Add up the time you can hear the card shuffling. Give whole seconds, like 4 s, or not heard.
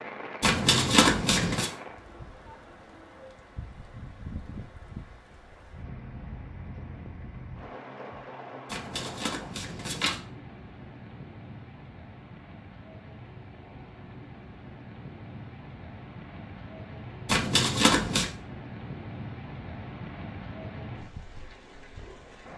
4 s.